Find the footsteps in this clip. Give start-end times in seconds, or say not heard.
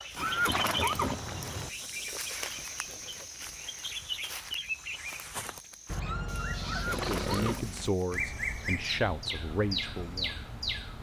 0.0-8.8.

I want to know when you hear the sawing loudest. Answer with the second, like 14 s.
7 s.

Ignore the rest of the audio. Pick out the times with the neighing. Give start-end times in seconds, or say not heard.
0.1-1.7, 6.6-7.7.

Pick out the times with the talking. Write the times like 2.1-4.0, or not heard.
6.9-10.5.